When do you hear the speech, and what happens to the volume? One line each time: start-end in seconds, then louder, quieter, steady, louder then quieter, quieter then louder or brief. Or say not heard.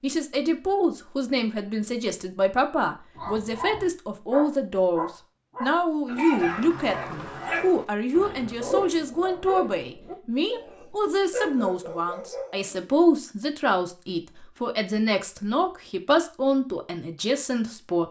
0.0-18.0 steady.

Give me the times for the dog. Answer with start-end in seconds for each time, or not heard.
3.1-12.7.